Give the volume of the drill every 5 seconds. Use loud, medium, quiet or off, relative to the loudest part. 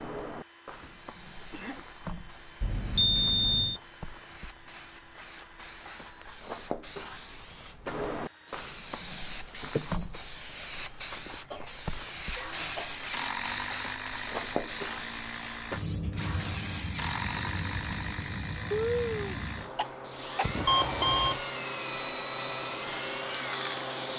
quiet, quiet, loud, loud, loud.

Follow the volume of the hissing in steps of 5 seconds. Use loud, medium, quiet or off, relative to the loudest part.
medium, loud, loud, loud, loud.